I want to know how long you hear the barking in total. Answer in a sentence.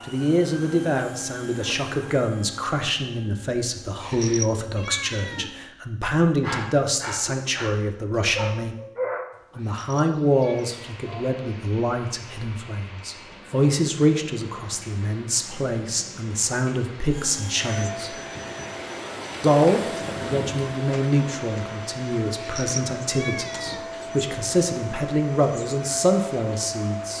You can hear the barking for 5 seconds altogether.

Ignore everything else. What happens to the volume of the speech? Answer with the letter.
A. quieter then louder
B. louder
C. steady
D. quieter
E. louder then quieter
C.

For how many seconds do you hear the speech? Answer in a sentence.
The speech can be heard for 25 seconds in total.